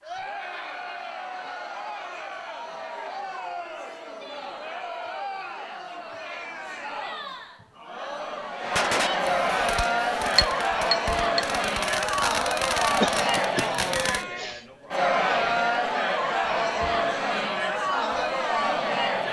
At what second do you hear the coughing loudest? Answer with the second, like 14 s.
13 s.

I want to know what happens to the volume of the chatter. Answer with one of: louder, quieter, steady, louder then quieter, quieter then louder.
louder.